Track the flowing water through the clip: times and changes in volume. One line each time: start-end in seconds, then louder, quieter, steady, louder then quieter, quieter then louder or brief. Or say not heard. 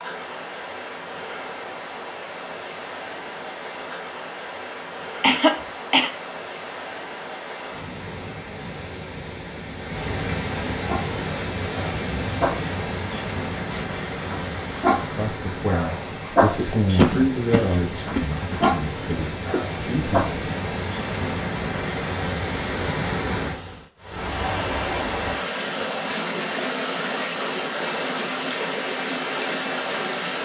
0.0-30.3 louder.